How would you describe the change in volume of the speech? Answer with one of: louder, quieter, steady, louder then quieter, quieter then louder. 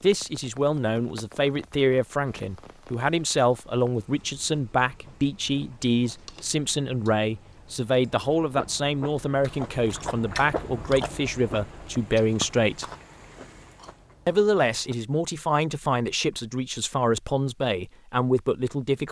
steady.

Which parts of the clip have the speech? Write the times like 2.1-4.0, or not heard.
0.0-12.8, 14.2-19.0.